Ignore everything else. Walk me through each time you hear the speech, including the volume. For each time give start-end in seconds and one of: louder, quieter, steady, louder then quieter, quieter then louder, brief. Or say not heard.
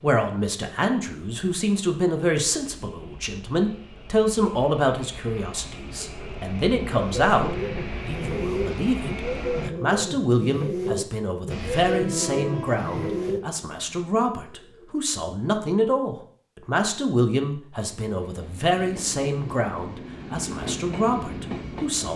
0.0-22.1 steady.